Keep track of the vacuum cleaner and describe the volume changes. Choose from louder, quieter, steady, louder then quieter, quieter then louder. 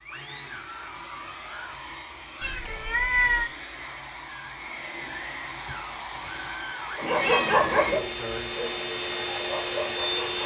louder.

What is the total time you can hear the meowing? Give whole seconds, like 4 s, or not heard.
2 s.